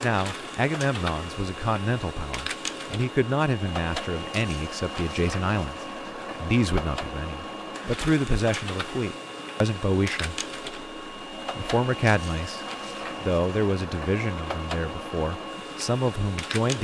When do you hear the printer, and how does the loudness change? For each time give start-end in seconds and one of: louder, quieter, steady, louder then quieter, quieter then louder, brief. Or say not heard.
0.0-16.7 steady.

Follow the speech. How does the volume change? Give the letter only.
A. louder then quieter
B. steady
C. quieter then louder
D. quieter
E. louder
B.